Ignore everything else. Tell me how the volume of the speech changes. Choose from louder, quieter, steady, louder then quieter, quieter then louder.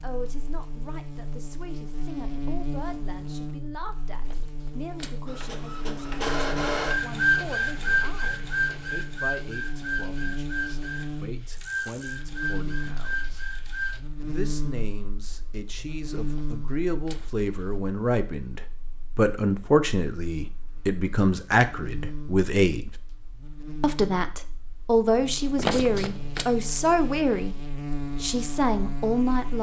louder.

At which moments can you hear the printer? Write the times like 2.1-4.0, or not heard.
5.2-14.0.